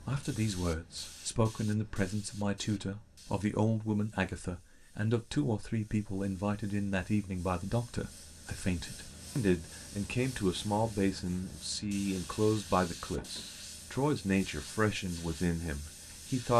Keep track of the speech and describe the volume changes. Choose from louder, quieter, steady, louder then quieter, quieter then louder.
steady.